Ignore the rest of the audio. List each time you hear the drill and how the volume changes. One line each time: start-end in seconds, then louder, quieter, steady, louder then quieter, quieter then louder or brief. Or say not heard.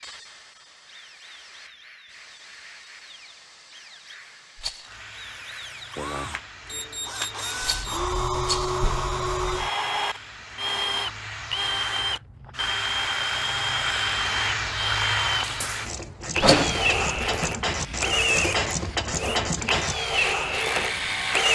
0.0-21.5 louder.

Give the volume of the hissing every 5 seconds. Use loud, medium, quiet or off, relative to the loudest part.
quiet, quiet, loud, loud, quiet.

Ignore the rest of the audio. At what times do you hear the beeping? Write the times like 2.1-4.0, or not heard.
6.7-7.9.